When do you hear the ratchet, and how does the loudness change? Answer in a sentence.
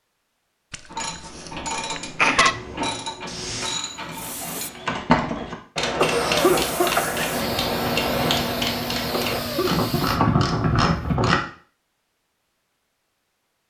You can hear the ratchet from 0.9 to 11.3 s, getting louder.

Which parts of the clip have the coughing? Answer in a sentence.
The coughing can be heard from 0.7 to 2.5 s, from 6.0 to 7.5 s and from 9.1 to 10.2 s.